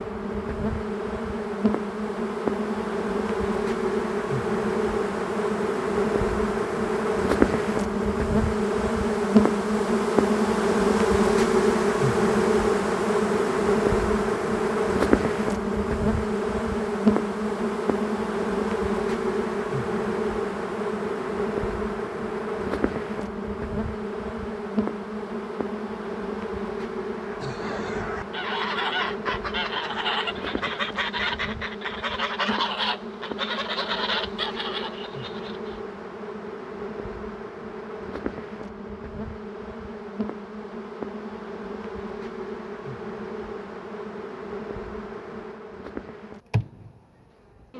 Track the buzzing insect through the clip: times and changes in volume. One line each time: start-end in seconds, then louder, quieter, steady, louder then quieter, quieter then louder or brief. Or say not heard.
0.0-47.7 quieter.